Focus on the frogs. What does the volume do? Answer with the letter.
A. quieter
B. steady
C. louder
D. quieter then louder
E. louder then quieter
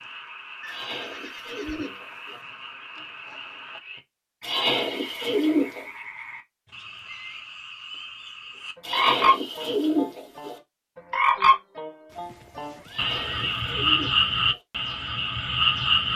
C.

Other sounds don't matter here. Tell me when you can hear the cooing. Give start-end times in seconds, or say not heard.
0.7-2.4, 4.4-5.8, 8.8-10.6, 12.8-14.6.